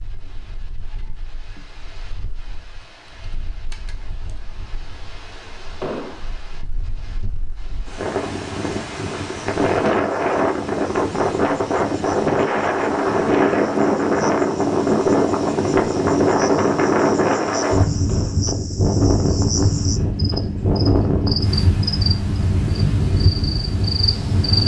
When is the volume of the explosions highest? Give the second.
6 s.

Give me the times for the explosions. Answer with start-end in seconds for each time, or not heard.
5.8-6.3, 18.1-18.6.